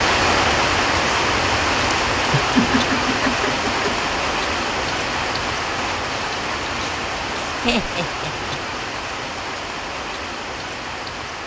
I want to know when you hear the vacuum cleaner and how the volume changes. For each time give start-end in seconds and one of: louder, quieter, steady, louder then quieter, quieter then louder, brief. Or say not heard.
not heard.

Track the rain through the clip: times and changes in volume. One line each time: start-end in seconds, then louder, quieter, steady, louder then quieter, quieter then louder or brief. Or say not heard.
0.0-11.4 quieter.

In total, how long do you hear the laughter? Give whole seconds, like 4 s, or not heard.
3 s.